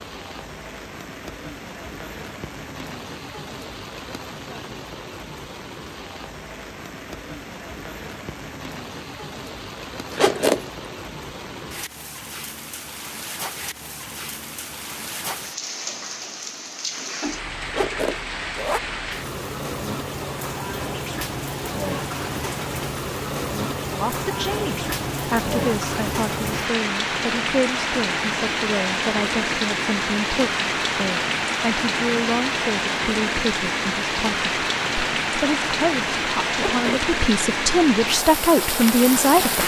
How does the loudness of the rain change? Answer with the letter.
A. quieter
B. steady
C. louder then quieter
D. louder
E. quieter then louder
D.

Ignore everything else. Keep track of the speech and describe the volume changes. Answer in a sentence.
The loudness of the speech goes up.